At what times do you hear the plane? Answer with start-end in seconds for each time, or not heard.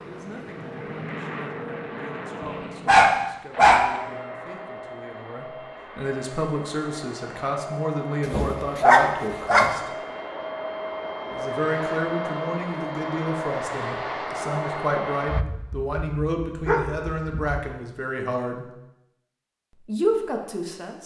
0.0-15.4.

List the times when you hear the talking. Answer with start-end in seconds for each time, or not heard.
0.0-9.9, 11.3-18.7, 19.8-21.0.